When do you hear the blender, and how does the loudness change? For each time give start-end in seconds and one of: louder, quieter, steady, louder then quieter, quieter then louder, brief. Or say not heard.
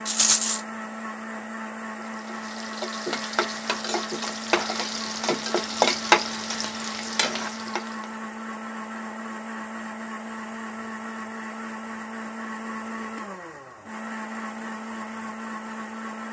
0.0-16.2 steady.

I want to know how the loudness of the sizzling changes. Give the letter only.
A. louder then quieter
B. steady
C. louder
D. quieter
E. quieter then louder
A.